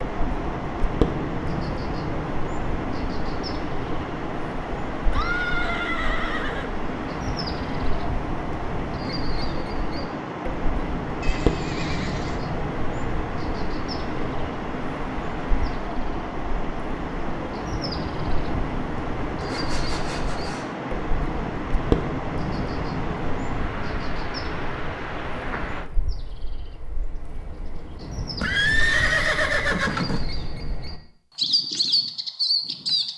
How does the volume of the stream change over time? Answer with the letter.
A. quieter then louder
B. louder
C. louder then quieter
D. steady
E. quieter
D.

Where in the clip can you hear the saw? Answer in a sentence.
You can hear the saw from 19.4 to 20.8 s.